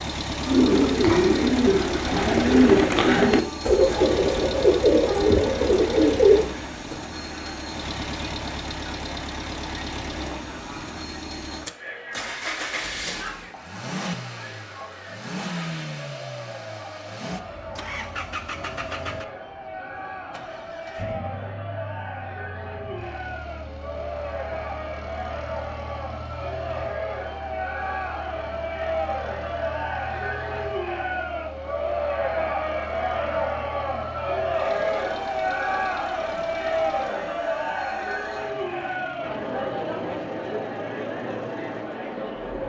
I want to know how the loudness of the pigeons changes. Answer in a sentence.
The loudness of the pigeons stays about the same.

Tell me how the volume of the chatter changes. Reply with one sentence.
The volume of the chatter goes up.